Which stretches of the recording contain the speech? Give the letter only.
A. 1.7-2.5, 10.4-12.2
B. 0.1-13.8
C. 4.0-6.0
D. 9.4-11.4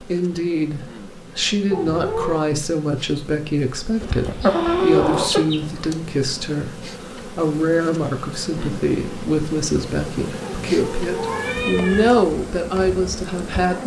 B.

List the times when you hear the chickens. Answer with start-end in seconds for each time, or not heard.
4.0-6.0.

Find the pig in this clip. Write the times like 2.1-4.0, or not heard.
not heard.